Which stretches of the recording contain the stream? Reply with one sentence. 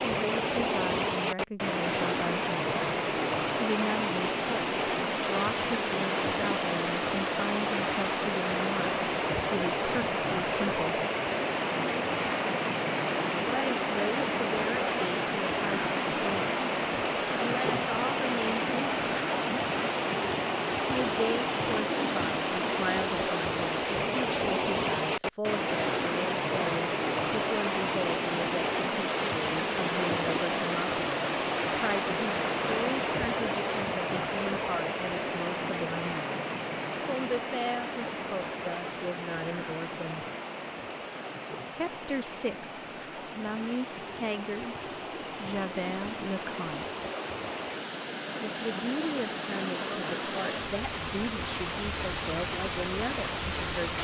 The stream can be heard from 0.0 to 53.9 s.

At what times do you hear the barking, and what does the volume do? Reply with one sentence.
The barking can't be heard in this clip.